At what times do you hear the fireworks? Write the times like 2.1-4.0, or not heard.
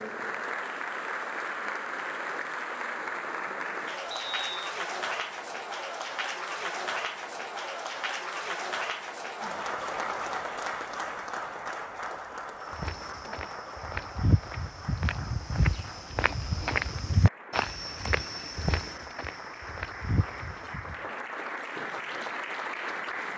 not heard.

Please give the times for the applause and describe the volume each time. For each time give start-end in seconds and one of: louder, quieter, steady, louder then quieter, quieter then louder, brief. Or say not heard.
0.0-23.3 quieter then louder.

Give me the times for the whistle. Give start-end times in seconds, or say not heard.
4.1-4.8.